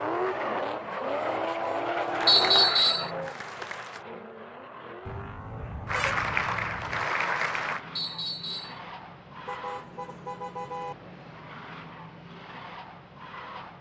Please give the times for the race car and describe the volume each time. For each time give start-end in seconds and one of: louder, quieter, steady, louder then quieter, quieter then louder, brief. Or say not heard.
0.0-13.7 quieter.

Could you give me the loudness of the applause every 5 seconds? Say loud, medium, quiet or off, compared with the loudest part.
medium, loud, off.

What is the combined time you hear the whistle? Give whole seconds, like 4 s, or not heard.
2 s.